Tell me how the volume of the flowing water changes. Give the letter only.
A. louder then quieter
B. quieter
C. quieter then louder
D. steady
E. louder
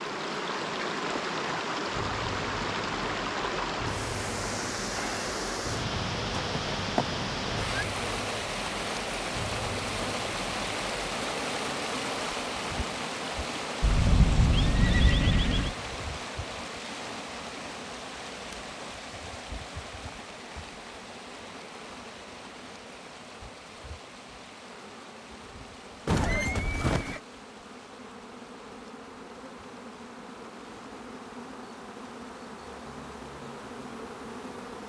B.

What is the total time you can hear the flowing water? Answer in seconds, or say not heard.
35 s.